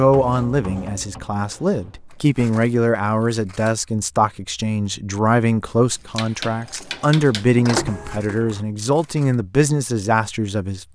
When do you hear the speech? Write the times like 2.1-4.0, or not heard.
0.0-10.9.